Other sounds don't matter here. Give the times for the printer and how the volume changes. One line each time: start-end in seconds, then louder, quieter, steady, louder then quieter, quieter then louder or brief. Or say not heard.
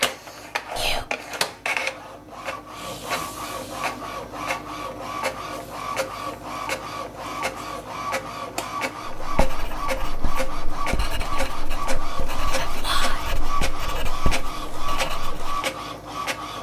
0.0-16.5 steady.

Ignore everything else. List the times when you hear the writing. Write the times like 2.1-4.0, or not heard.
9.2-15.6.